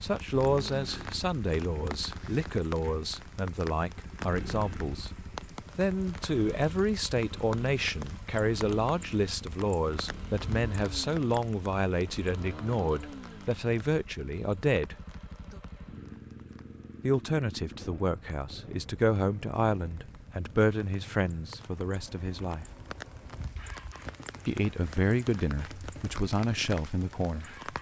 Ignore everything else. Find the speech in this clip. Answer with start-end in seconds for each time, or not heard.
0.0-14.9, 17.0-22.6, 24.4-27.7.